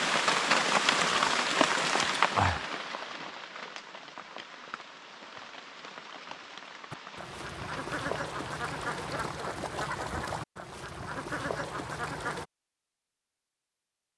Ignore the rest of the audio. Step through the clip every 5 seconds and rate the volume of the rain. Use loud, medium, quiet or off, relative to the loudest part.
loud, quiet, off.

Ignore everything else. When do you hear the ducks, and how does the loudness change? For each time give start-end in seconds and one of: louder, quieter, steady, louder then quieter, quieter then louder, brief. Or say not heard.
6.9-12.4 steady.